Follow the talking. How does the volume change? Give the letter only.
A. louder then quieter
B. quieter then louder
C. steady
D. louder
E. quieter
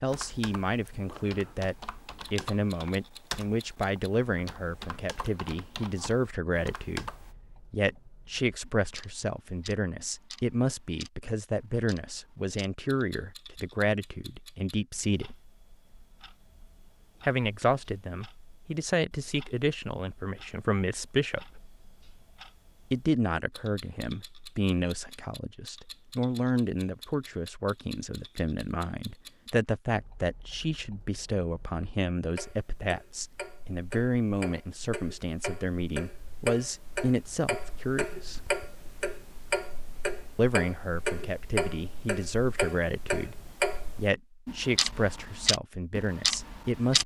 C.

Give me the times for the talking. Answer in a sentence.
The talking can be heard from 0.0 to 15.3 s, from 17.2 to 21.6 s, from 22.9 to 38.5 s and from 40.4 to 47.0 s.